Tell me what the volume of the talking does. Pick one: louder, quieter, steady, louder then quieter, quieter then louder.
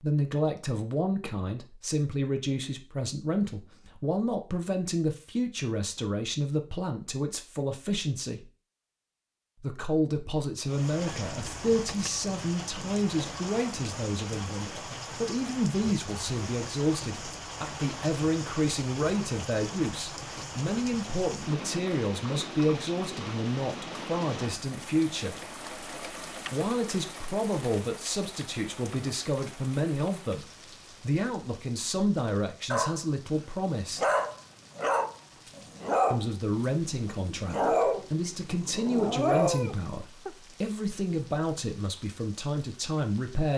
steady.